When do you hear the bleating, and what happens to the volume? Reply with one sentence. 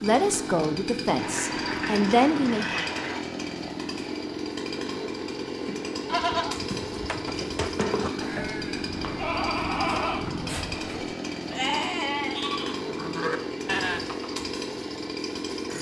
You can hear the bleating from 5.5 to 14.4 s, at a steady volume.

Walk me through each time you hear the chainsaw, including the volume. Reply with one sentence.
You can hear the chainsaw from 0.0 to 15.7 s, at a steady volume.